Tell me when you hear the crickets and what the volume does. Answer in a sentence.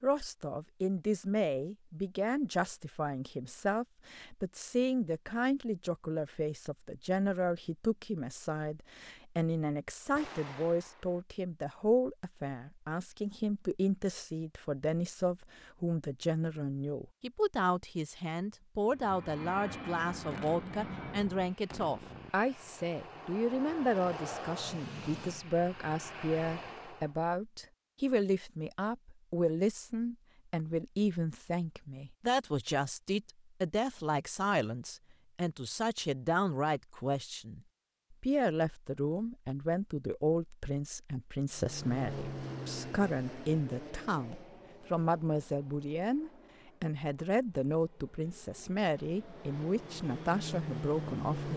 You can't hear the crickets here.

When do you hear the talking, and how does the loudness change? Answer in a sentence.
The talking can be heard from 0.0 to 51.5 s, at a steady volume.